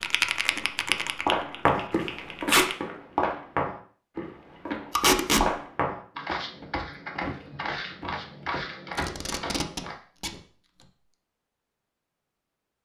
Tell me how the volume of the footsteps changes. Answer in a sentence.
The loudness of the footsteps goes down.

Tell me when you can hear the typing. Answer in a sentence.
The typing can be heard from 0.0 to 2.8 s.